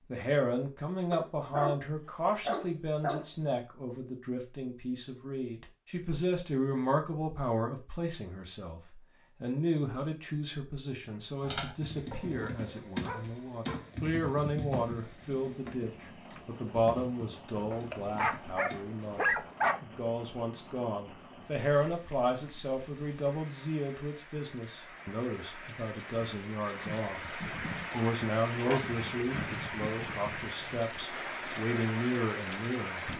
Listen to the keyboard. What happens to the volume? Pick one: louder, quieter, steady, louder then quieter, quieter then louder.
quieter.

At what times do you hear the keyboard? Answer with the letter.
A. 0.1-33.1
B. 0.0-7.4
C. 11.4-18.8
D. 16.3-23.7
C.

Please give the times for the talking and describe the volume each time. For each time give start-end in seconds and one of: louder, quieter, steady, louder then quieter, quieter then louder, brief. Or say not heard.
0.1-33.1 steady.